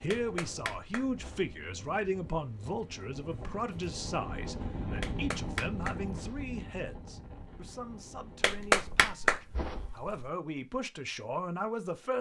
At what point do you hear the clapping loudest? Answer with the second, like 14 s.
9 s.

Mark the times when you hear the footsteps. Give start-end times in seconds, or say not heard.
not heard.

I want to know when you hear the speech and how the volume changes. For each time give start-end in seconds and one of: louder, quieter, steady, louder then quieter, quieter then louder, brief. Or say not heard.
0.0-12.1 quieter then louder.